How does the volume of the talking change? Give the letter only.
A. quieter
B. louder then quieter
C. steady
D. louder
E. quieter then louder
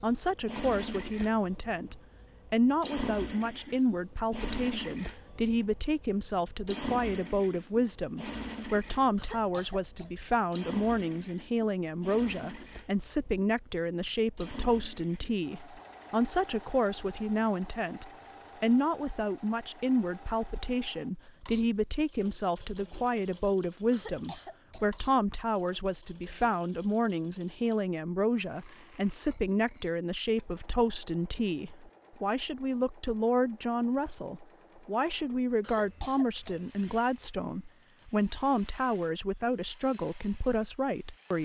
C.